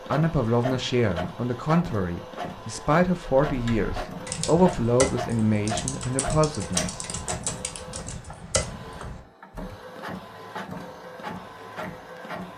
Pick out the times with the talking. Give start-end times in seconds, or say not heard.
0.0-7.0.